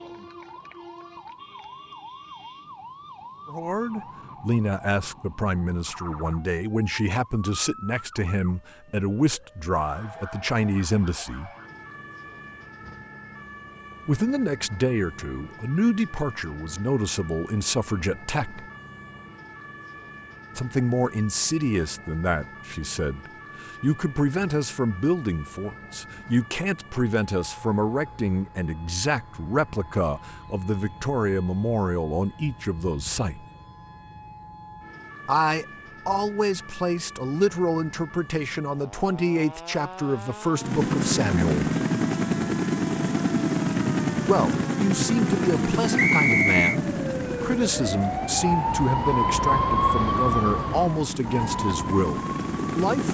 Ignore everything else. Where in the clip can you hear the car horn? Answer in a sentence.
You can't hear the car horn here.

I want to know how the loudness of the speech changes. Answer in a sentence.
The loudness of the speech stays about the same.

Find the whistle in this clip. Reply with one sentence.
You can hear the whistle from 46.0 to 46.8 s.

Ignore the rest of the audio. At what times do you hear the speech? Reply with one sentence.
You can hear the speech from 3.5 to 11.5 s, from 14.1 to 18.6 s, from 20.6 to 33.5 s, from 35.2 to 41.7 s and from 44.2 to 53.0 s.